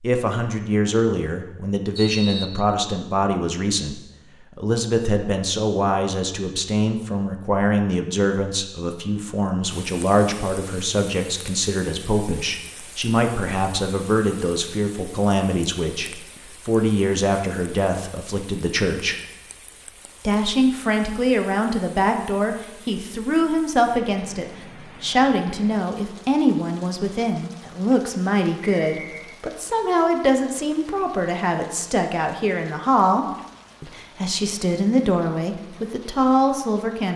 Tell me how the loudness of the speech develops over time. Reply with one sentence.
The volume of the speech stays about the same.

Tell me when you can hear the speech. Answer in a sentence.
The speech can be heard from 0.0 to 19.1 s and from 20.2 to 37.1 s.